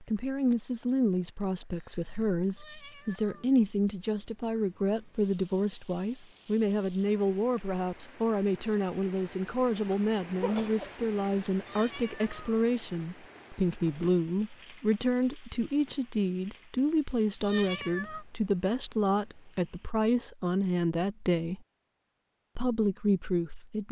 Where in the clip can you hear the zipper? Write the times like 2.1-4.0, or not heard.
not heard.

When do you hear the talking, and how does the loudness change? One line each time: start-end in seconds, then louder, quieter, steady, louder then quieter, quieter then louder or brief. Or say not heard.
0.0-21.6 steady
22.6-23.8 brief.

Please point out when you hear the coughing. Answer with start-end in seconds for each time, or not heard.
10.3-11.1.